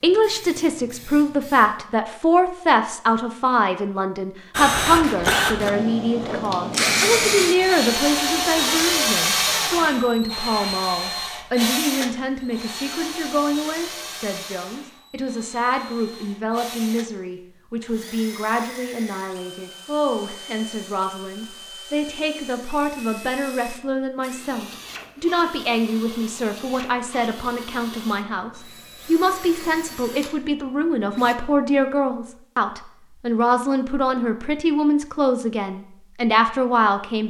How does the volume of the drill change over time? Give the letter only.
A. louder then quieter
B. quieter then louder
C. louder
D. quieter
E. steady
D.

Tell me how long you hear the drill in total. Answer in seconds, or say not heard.
27 s.